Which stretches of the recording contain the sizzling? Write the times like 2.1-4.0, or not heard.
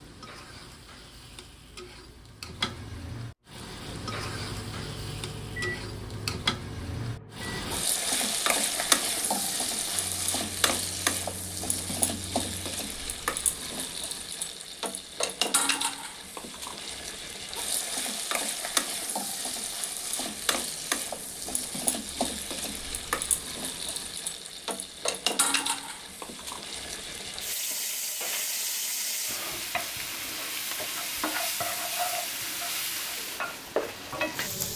0.0-34.7.